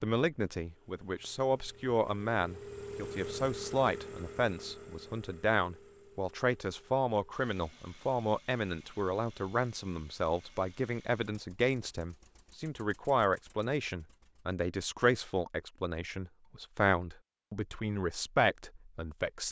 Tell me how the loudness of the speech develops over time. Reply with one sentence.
The loudness of the speech stays about the same.